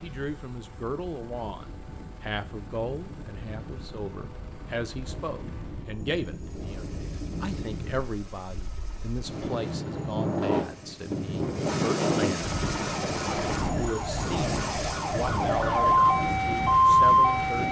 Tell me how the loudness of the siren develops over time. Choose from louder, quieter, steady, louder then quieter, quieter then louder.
louder.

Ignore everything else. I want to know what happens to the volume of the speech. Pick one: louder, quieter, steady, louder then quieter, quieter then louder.
steady.